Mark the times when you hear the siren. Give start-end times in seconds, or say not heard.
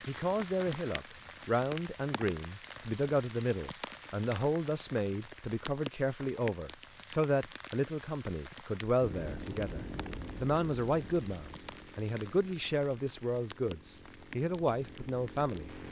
not heard.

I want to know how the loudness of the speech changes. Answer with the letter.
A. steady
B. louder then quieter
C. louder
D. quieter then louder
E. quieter
A.